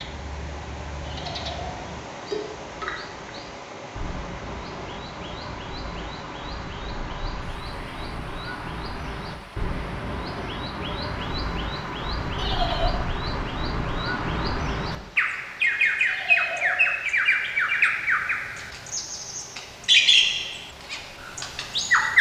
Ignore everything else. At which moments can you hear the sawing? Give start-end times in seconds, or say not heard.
not heard.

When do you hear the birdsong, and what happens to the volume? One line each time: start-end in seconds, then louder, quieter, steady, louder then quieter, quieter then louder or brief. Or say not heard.
0.0-22.1 louder.